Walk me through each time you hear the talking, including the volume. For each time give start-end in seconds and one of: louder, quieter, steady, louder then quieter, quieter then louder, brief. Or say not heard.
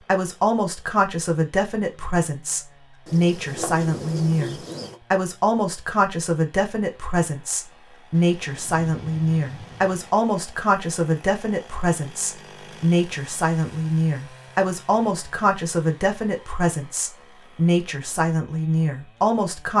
0.0-19.7 steady.